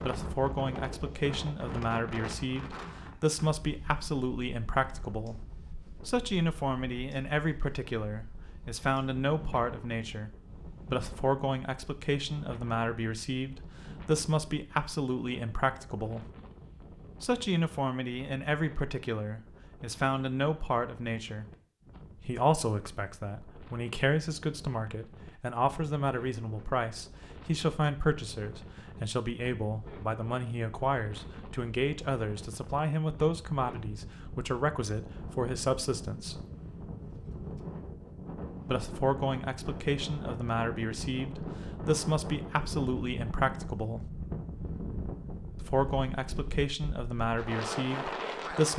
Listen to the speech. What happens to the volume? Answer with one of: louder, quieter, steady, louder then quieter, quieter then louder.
steady.